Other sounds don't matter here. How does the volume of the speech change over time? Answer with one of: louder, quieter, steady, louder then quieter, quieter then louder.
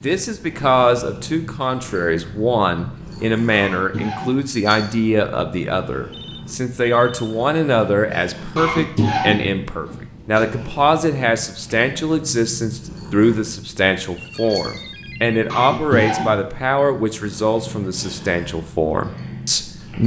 steady.